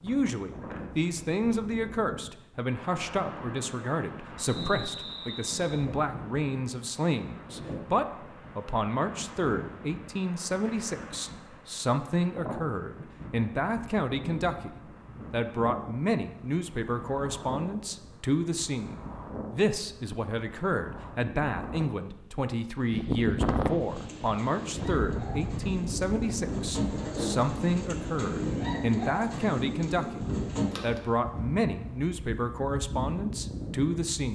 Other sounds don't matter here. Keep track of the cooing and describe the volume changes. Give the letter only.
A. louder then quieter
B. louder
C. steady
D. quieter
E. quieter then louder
B.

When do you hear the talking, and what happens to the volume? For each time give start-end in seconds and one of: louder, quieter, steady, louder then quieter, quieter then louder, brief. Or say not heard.
0.0-34.3 steady.